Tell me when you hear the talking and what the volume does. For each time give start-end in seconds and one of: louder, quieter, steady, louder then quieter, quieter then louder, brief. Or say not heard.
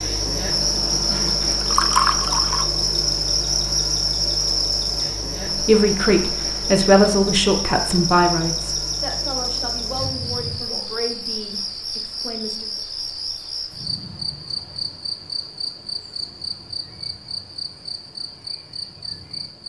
5.5-12.7 quieter.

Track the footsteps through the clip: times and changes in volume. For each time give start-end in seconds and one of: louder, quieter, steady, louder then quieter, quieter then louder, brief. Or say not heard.
not heard.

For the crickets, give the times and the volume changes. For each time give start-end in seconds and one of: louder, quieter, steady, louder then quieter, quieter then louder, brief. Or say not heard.
0.0-19.6 quieter.